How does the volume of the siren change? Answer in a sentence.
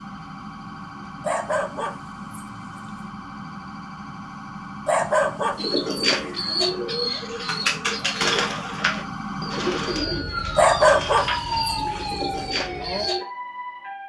The loudness of the siren goes up.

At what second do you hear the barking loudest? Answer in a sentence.
The loudest moment of the barking is at 11 seconds.